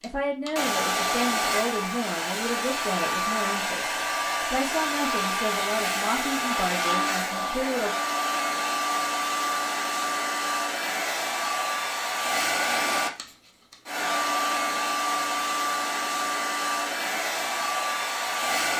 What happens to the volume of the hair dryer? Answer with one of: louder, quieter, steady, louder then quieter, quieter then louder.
steady.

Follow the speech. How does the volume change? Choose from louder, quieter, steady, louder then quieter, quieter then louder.
steady.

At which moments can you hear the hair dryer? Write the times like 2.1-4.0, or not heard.
0.0-18.7.